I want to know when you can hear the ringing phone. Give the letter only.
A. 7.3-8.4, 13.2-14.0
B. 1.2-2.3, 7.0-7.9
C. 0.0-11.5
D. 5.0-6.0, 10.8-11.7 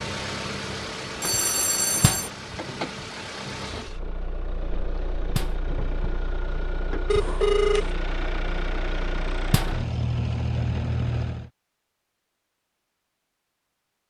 B.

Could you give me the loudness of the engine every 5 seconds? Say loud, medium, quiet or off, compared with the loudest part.
medium, medium, loud.